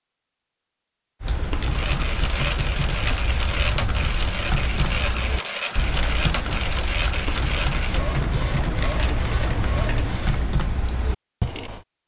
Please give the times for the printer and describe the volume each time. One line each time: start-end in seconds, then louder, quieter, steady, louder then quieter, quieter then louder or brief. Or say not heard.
1.5-10.7 steady.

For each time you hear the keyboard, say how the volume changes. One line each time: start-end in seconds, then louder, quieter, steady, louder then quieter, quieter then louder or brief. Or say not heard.
1.2-11.8 steady.